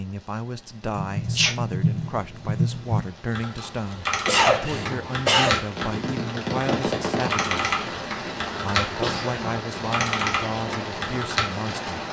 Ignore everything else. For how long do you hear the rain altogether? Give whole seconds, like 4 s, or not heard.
12 s.